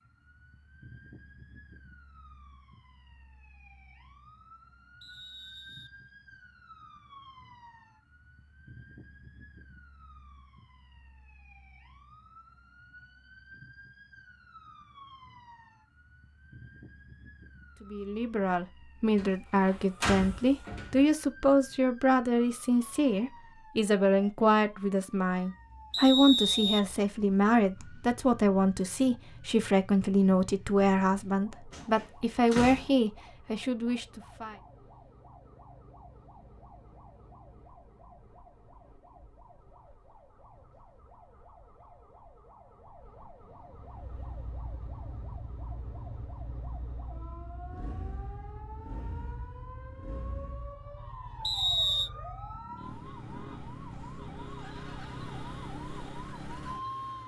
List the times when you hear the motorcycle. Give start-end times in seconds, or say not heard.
43.7-57.2.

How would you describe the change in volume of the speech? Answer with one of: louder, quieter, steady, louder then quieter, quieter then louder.
steady.